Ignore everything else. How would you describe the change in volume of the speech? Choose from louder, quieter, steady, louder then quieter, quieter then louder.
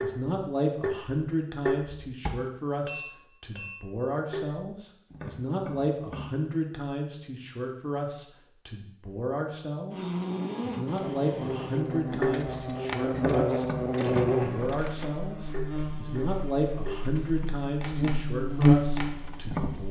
steady.